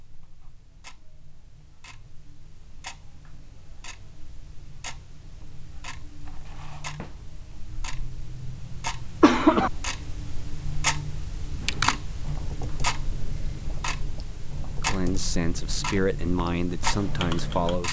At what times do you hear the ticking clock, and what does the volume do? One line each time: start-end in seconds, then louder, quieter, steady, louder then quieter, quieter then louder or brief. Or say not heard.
0.0-17.8 louder.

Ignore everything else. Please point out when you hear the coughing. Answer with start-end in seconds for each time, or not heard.
8.0-9.7.